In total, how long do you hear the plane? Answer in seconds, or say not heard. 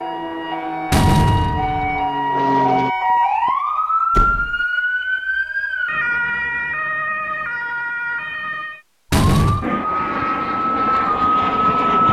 5 s.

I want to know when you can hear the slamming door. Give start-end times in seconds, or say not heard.
0.9-2.0, 4.1-4.6, 9.1-9.7.